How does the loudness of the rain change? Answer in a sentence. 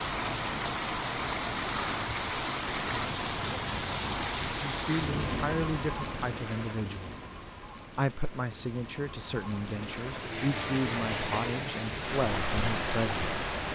The volume of the rain goes down, then up.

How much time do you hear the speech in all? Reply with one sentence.
The speech can be heard for 8 seconds in total.